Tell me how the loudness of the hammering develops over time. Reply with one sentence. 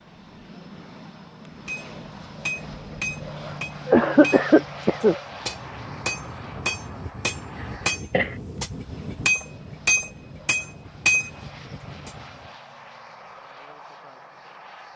The volume of the hammering goes up.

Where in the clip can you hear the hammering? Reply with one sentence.
You can hear the hammering from 1.6 to 12.2 s.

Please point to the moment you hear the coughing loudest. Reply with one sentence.
The volume of the coughing peaks at 4 seconds.